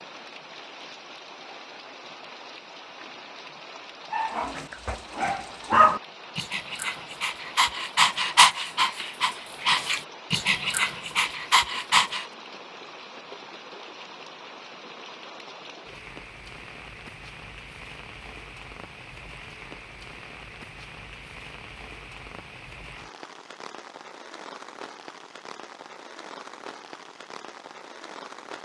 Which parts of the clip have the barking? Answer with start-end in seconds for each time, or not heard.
4.1-12.2.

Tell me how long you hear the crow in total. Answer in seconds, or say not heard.
not heard.